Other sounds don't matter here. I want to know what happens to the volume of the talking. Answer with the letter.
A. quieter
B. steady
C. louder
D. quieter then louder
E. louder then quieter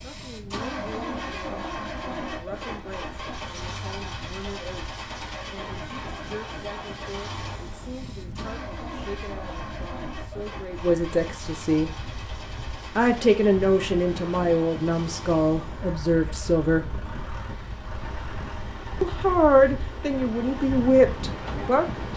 C.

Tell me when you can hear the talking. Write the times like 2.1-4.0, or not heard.
0.0-11.9, 12.9-16.9, 19.0-22.1.